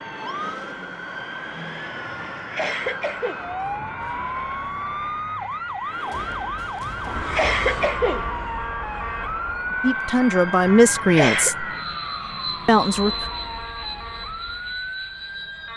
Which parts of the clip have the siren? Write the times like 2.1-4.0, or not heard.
0.0-15.7.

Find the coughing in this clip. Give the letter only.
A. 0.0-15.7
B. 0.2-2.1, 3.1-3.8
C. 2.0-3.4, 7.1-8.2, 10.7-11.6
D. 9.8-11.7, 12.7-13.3
C.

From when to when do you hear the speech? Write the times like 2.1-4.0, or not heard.
9.8-11.7, 12.7-13.3.